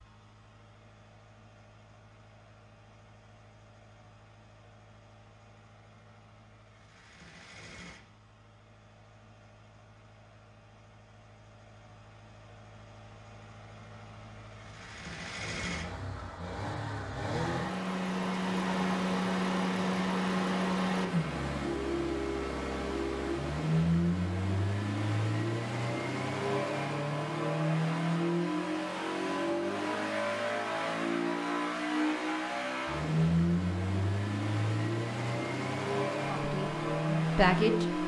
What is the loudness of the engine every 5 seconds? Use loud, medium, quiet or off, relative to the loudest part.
quiet, quiet, quiet, loud, loud, loud, loud, loud.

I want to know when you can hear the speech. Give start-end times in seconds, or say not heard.
36.3-38.0.